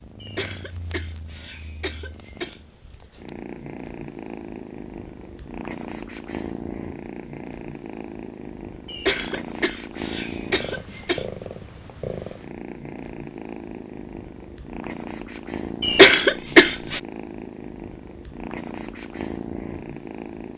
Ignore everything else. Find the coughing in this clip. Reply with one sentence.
You can hear the coughing from 0.2 to 2.6 s, from 8.8 to 11.2 s and from 15.8 to 17.0 s.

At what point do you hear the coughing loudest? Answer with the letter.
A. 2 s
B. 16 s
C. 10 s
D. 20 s
B.